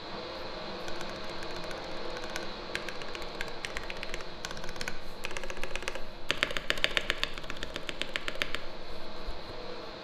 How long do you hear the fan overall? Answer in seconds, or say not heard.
10 s.